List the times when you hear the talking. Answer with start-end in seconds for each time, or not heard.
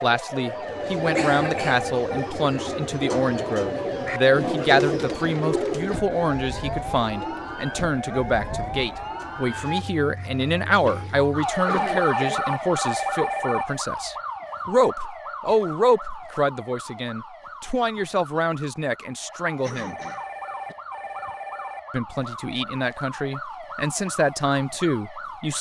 0.0-19.9, 21.9-25.5.